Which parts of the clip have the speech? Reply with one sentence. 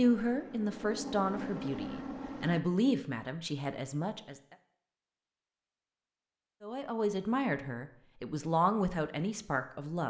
The speech can be heard from 0.0 to 4.5 s and from 6.6 to 10.0 s.